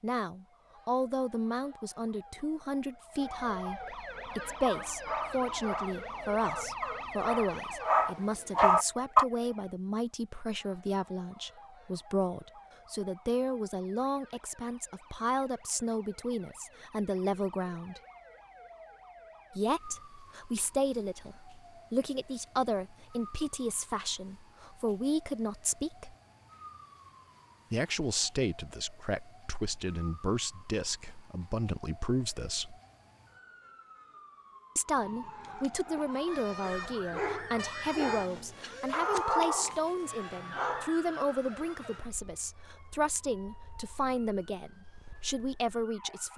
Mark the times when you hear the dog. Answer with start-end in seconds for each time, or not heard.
4.7-9.2, 36.0-41.0.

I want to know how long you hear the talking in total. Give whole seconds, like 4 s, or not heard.
41 s.